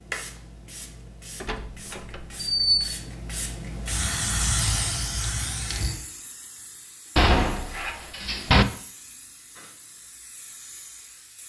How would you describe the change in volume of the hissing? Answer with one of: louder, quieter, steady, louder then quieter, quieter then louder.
louder then quieter.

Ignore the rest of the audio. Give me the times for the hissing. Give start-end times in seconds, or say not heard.
0.0-11.4.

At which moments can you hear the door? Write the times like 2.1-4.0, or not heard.
1.4-2.9, 7.2-8.7.